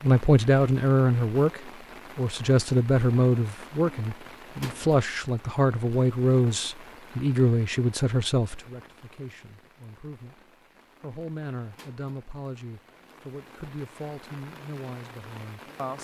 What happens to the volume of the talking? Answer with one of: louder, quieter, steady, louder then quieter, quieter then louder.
quieter.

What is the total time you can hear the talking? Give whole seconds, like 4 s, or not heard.
16 s.